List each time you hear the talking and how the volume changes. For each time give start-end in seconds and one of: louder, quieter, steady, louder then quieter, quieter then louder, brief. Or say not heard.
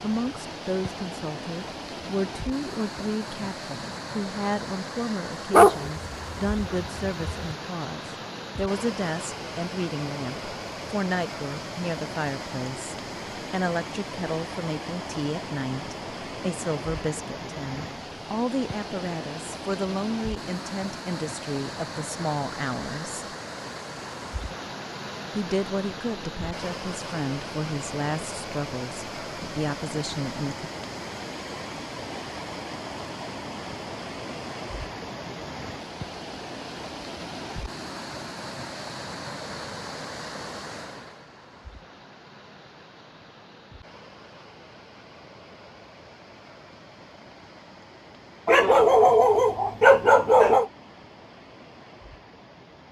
0.0-23.2 steady
25.4-30.7 steady.